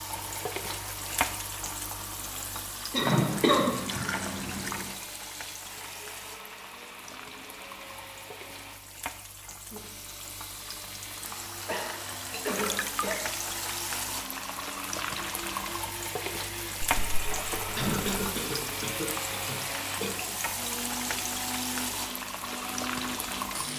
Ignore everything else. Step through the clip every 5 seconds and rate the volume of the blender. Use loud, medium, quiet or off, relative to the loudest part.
medium, medium, medium, loud, loud.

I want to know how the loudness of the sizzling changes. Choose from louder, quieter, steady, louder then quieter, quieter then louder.
quieter then louder.